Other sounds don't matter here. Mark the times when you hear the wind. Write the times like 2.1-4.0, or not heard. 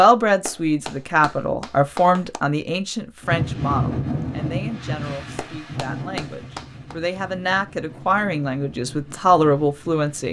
3.2-10.2.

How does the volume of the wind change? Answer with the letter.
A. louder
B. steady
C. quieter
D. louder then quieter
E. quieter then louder
C.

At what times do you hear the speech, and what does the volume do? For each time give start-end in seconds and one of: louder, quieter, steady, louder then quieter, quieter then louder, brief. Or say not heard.
0.0-10.2 quieter then louder.